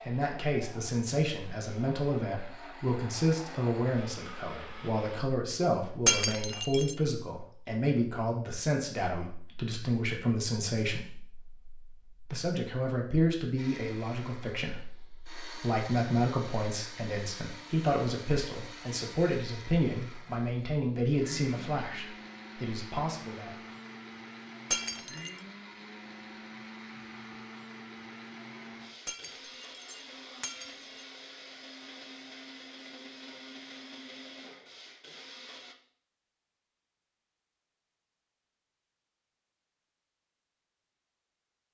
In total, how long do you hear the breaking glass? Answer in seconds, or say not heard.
3 s.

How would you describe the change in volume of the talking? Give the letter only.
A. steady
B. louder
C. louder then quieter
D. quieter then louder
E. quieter
A.